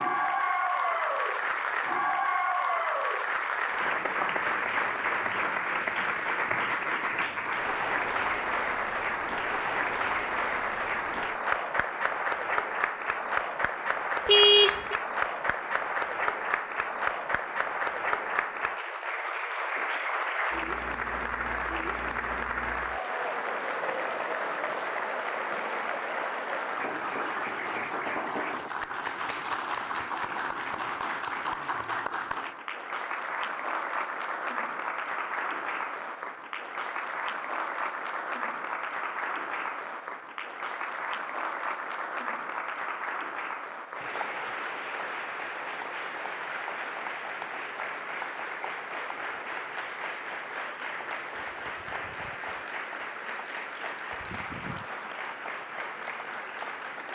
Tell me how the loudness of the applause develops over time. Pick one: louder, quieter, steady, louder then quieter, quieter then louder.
quieter.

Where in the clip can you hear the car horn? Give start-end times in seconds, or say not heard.
14.2-14.9.